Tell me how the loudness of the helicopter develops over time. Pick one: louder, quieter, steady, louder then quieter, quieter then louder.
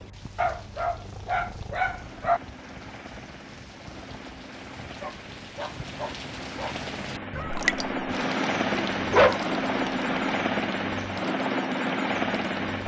louder.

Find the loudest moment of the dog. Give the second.
9 s.